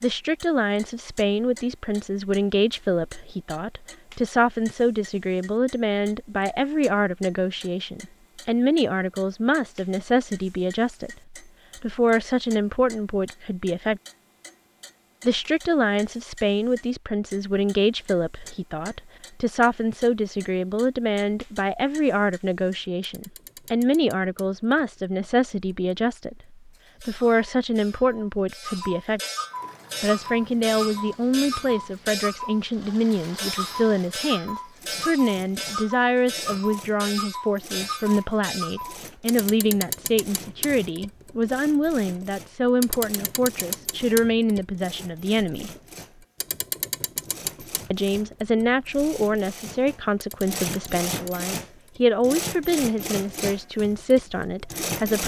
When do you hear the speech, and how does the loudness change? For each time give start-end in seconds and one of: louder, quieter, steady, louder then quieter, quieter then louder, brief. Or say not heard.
0.0-14.0 steady
15.2-29.2 steady
30.0-45.7 steady
47.9-55.2 steady.